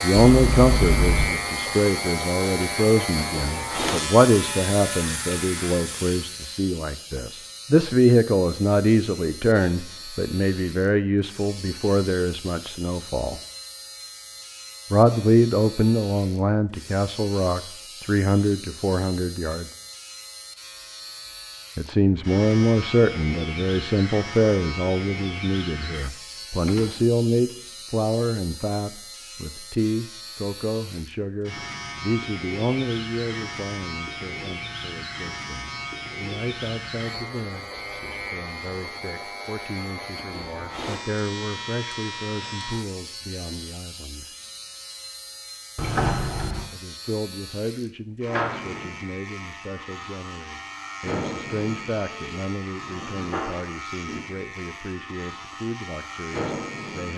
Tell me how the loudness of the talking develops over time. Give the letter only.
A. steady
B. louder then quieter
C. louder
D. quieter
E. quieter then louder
D.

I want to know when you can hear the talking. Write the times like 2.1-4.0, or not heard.
0.0-13.4, 14.9-19.7, 21.8-44.2, 46.7-57.1.